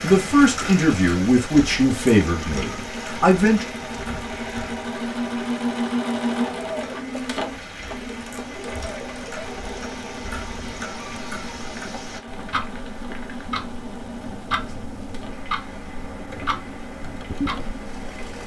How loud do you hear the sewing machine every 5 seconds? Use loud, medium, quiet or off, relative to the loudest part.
medium, loud, medium, quiet.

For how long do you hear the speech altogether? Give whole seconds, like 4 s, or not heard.
4 s.